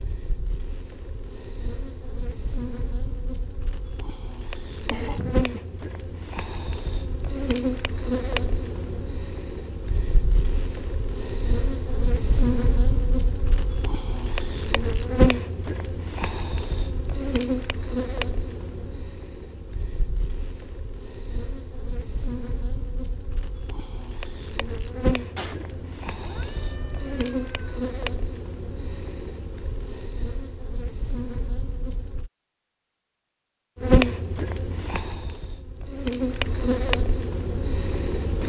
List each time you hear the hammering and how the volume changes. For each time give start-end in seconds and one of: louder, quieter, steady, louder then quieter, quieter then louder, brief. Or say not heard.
not heard.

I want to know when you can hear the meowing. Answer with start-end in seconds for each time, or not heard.
25.4-27.9.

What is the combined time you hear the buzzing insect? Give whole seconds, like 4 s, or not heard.
37 s.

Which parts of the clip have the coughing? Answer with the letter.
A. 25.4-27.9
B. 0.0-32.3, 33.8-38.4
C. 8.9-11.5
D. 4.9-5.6
D.